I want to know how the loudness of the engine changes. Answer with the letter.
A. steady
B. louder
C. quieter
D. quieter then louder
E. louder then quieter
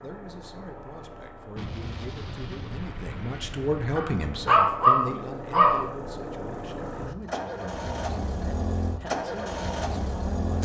B.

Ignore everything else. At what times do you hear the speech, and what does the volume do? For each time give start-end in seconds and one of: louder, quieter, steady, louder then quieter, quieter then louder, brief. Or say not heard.
0.0-10.6 louder then quieter.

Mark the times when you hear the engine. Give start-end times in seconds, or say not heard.
0.0-10.6.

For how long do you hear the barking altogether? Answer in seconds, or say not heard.
2 s.